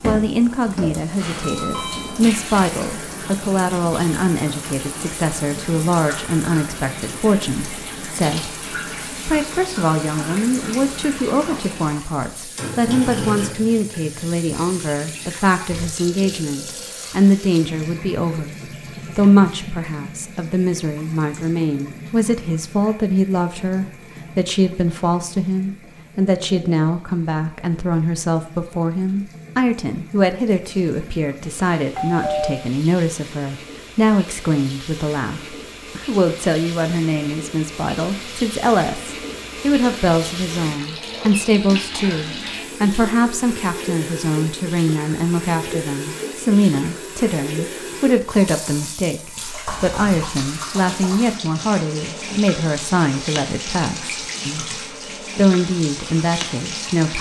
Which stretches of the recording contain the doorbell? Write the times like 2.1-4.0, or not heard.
1.1-2.2, 31.9-32.6, 49.6-50.3.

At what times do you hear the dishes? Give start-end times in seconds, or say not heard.
not heard.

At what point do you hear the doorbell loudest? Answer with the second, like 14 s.
32 s.